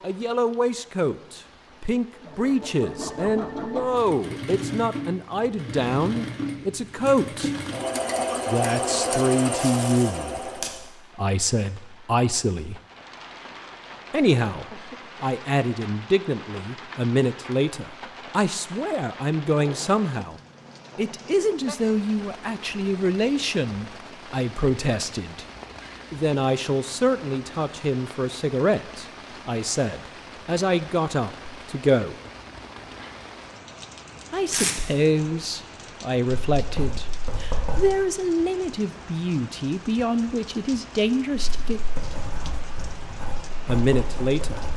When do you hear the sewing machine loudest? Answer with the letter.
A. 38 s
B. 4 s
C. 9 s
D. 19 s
C.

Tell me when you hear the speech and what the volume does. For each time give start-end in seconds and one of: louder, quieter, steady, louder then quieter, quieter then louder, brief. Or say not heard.
0.0-7.5 steady
8.4-12.8 quieter then louder
14.1-25.4 steady
26.1-32.1 steady
34.3-41.8 steady
43.6-44.6 brief.